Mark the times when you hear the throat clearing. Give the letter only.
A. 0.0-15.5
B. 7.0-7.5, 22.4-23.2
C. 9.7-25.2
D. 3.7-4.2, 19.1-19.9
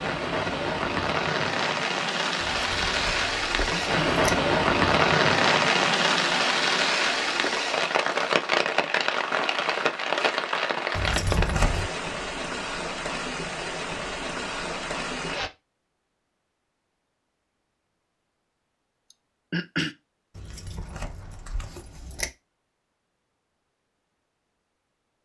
D.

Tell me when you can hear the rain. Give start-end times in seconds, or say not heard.
0.0-15.5.